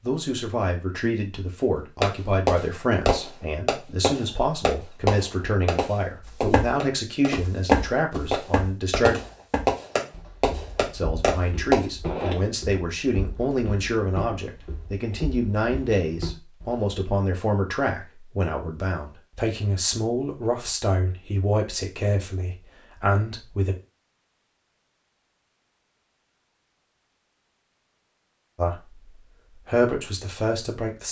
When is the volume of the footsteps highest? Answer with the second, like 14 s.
8 s.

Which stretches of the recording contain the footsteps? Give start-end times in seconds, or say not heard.
6.2-16.9.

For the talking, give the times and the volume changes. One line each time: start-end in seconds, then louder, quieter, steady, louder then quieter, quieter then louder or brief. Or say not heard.
0.0-9.2 steady
10.9-23.8 steady
28.6-31.0 brief.